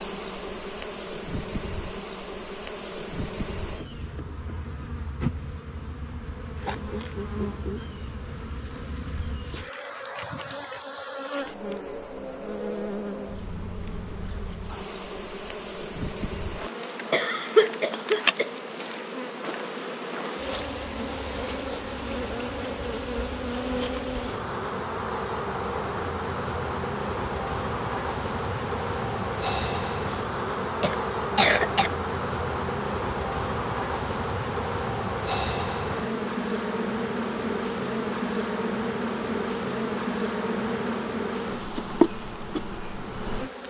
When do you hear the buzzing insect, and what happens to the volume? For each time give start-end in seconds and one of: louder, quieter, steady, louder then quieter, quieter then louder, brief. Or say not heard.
0.0-43.6 louder.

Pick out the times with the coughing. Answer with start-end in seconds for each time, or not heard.
17.1-18.5, 30.8-31.9.